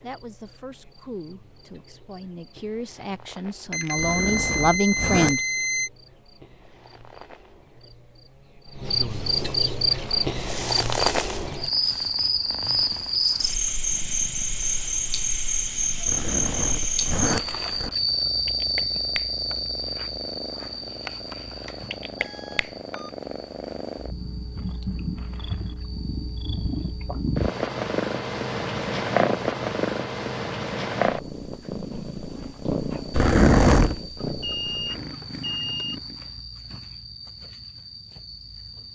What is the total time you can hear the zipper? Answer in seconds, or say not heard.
4 s.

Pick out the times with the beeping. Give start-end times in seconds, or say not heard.
3.7-5.9, 21.6-23.1, 34.1-36.0.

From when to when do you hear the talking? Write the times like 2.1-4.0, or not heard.
0.0-5.4.